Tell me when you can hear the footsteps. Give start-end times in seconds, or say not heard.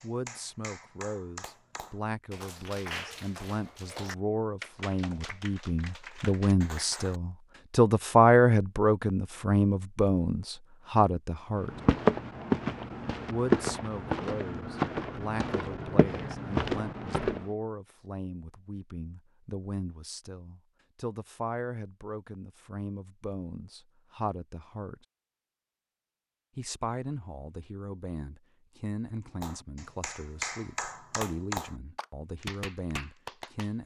11.7-17.4.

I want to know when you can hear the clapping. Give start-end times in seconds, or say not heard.
0.0-7.2, 29.4-33.8.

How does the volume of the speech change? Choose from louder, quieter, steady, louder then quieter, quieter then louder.
louder then quieter.